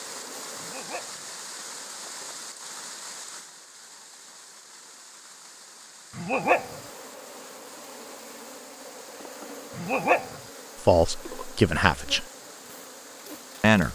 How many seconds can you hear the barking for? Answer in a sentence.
You can hear the barking for 2 seconds altogether.